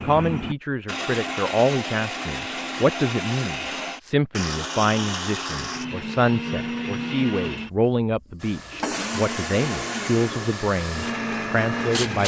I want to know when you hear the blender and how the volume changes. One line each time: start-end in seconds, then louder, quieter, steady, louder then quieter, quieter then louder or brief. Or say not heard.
0.0-12.2 steady.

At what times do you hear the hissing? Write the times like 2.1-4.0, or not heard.
8.3-12.2.